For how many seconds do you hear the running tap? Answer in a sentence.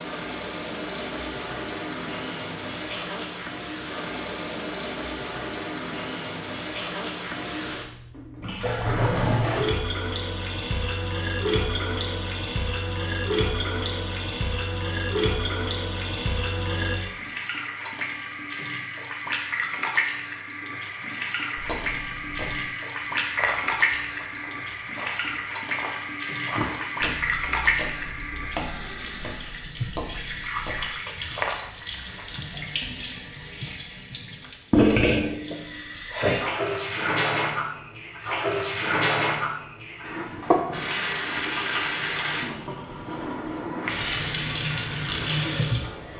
The running tap can be heard for 46 seconds in total.